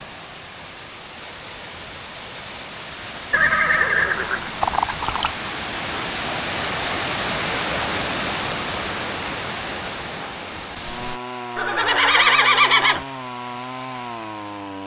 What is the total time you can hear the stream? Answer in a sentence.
The stream can be heard for 11 seconds in total.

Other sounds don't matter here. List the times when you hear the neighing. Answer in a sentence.
The neighing can be heard from 3.3 to 5.3 s and from 11.6 to 13.1 s.